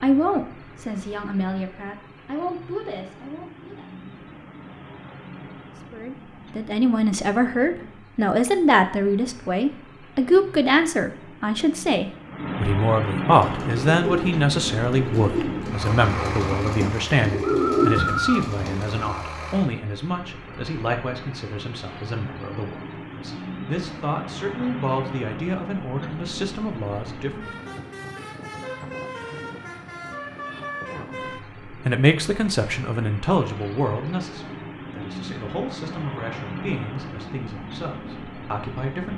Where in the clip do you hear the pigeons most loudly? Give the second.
18 s.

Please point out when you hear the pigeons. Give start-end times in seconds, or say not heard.
13.3-19.1.